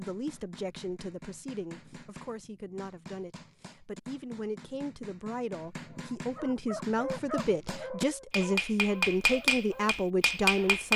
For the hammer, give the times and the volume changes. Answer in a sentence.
You can hear the hammer from 0.0 to 10.9 s, getting louder.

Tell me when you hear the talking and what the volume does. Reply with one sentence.
You can hear the talking from 0.0 to 10.9 s, getting louder.